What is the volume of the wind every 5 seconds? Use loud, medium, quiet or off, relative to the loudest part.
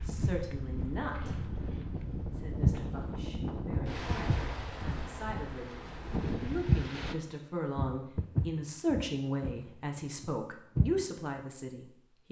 loud, loud, off.